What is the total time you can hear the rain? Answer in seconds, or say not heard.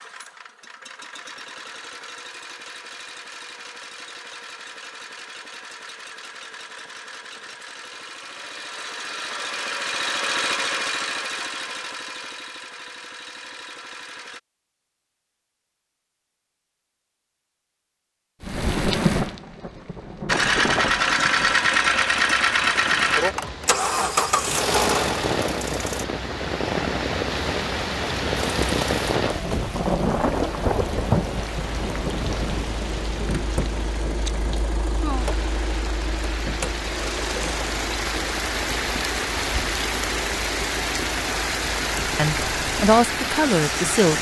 26 s.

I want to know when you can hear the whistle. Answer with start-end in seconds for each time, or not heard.
not heard.